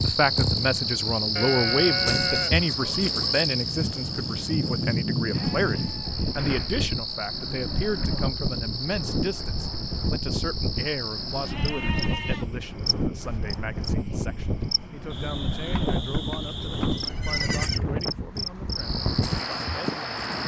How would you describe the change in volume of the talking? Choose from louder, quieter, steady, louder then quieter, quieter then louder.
quieter.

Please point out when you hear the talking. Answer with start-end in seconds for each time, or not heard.
0.0-20.3.